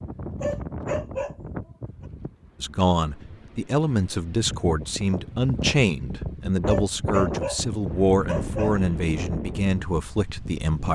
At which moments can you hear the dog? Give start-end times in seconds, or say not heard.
0.4-1.6, 6.7-8.8.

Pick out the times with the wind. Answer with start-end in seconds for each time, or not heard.
0.0-10.9.